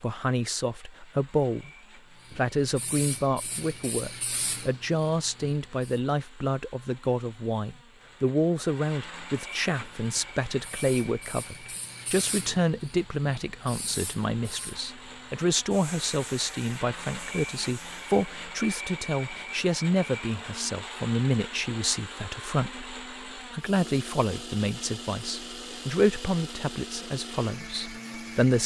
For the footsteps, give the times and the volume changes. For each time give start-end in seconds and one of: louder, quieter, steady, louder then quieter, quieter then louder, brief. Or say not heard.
not heard.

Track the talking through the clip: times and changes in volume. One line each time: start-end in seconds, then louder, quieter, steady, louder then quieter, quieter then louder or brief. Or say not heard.
0.0-1.7 brief
2.4-28.6 steady.